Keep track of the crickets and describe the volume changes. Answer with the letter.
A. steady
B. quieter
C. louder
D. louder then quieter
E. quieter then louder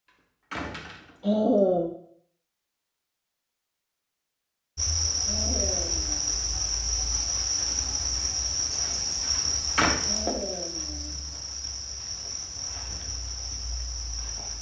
B.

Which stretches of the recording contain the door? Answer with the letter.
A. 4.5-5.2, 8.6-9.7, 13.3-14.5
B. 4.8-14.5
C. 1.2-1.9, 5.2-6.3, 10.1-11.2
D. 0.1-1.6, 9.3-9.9
D.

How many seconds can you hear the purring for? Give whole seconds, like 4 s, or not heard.
not heard.